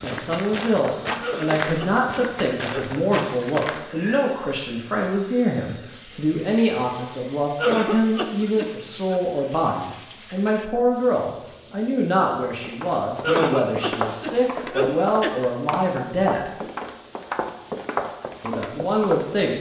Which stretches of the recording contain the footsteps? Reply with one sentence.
You can hear the footsteps from 0.0 to 3.9 s and from 12.6 to 19.5 s.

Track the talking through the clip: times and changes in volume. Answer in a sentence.
You can hear the talking from 0.0 to 16.5 s, at a steady volume; and briefly from 18.4 to 19.5 s.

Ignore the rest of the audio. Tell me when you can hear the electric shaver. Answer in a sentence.
You can't hear the electric shaver here.